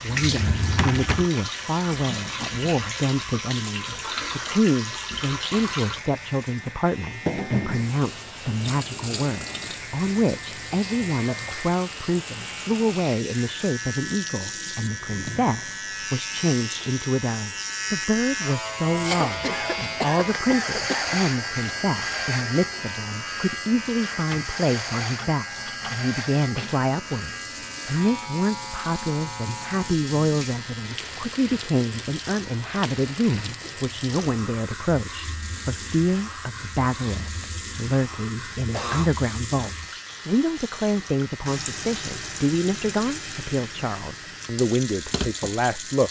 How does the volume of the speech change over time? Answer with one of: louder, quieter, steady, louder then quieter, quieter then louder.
steady.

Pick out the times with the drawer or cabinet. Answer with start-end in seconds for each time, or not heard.
0.2-1.3.